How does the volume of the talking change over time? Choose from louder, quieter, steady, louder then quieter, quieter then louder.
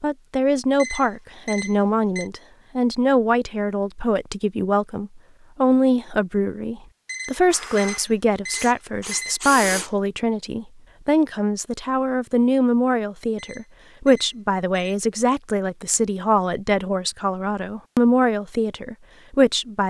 steady.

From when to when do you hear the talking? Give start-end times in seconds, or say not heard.
0.0-19.8.